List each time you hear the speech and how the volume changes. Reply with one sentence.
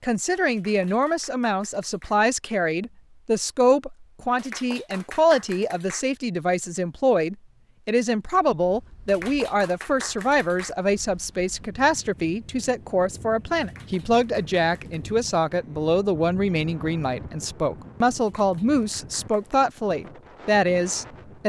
The speech can be heard from 0.0 to 21.4 s, at a steady volume.